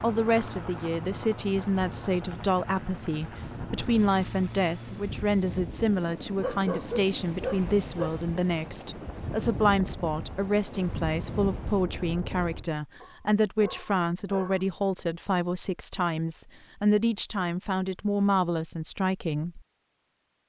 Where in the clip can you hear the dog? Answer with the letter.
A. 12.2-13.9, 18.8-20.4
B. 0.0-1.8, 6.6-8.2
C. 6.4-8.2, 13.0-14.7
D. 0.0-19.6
C.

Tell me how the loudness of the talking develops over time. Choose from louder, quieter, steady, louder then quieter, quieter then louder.
steady.